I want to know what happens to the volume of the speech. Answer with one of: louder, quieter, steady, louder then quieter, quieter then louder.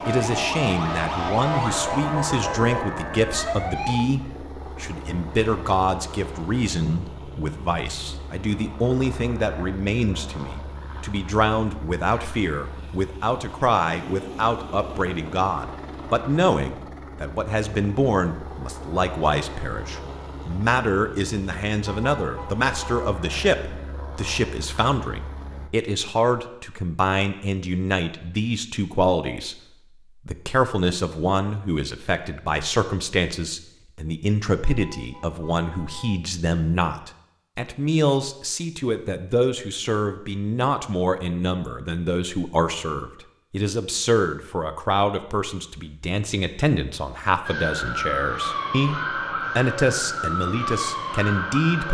steady.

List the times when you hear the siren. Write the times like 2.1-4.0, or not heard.
0.0-4.0, 47.5-51.8.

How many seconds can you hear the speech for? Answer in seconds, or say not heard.
51 s.